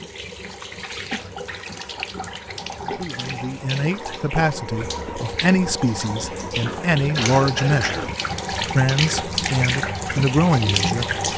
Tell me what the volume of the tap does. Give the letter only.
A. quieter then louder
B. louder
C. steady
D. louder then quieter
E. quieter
B.